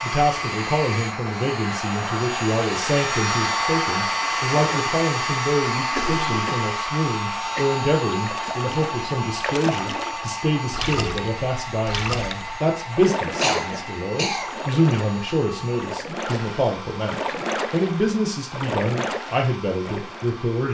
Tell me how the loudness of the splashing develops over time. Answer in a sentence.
The loudness of the splashing stays about the same.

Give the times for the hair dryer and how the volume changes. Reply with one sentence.
The hair dryer can be heard from 0.0 to 20.6 s, getting quieter.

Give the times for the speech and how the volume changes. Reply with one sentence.
You can hear the speech from 0.0 to 20.6 s, at a steady volume.